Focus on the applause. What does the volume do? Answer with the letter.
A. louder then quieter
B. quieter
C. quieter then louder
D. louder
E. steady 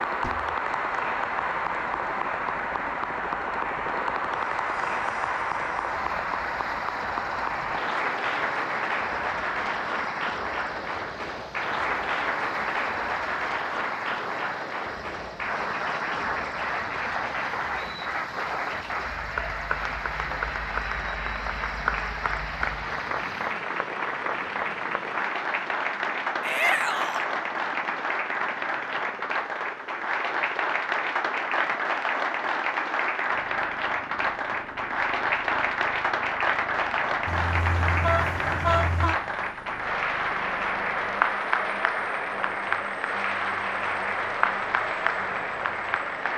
E.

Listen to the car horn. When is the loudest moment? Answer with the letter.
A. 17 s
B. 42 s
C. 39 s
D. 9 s
C.